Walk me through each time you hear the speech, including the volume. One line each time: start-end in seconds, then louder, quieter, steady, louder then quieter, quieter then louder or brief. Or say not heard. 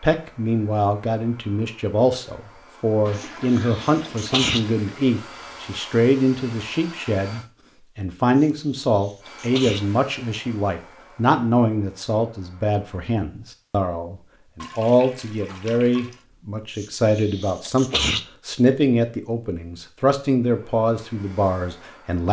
0.0-22.2 steady.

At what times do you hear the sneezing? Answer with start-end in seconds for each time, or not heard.
3.1-4.6, 8.3-9.8, 16.8-18.2.